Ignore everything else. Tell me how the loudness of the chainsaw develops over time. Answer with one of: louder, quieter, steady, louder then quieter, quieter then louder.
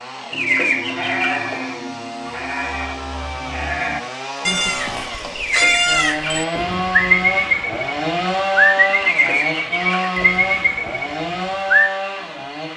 louder.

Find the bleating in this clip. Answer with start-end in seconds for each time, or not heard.
0.3-11.8.